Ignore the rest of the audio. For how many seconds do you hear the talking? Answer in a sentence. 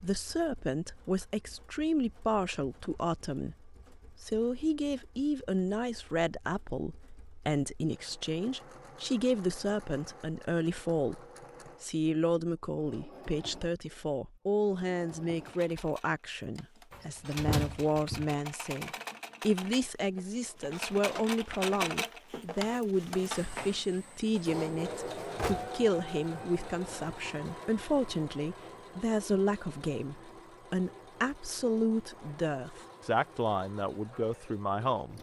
The talking can be heard for 34 seconds in total.